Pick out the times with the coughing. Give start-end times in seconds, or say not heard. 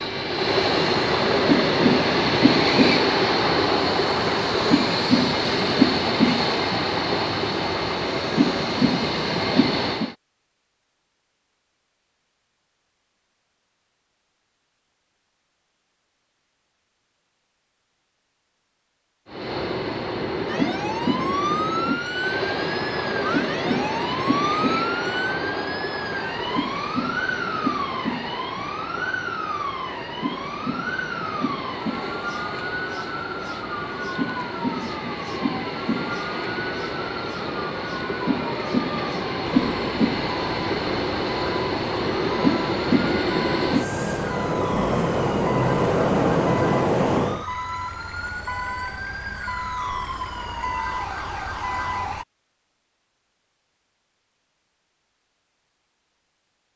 not heard.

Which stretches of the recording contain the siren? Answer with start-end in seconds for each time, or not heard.
20.4-52.2.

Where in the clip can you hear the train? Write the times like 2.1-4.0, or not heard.
0.0-10.2, 19.3-47.5.